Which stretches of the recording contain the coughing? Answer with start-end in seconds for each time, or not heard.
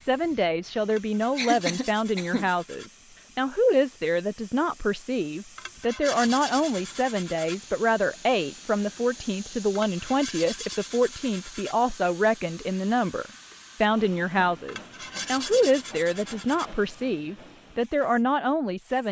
1.4-2.5.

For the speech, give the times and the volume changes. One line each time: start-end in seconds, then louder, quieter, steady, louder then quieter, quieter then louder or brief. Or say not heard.
0.1-19.0 steady.